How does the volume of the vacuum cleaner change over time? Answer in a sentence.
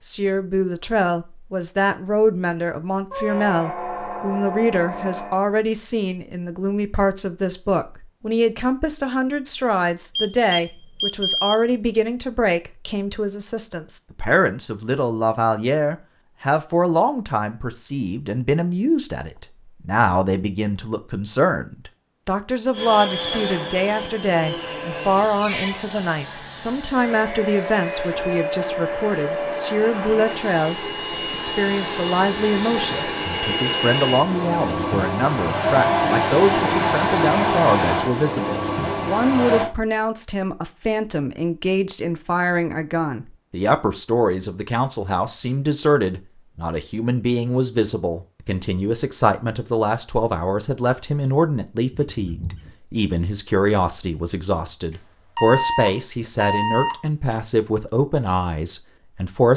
The loudness of the vacuum cleaner goes up.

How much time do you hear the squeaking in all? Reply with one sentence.
The squeaking can be heard for 4 seconds in total.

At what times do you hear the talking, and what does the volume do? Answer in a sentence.
The talking can be heard from 0.0 to 59.5 s, at a steady volume.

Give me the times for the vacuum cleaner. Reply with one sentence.
You can hear the vacuum cleaner from 22.7 to 39.7 s.